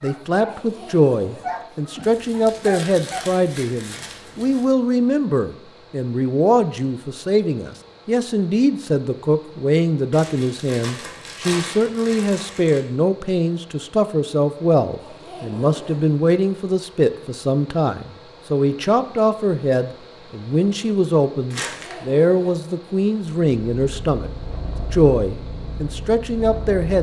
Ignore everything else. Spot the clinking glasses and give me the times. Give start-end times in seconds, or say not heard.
not heard.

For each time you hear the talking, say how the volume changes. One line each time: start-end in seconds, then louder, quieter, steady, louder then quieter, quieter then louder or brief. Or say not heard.
0.0-24.3 steady
24.9-26.9 brief.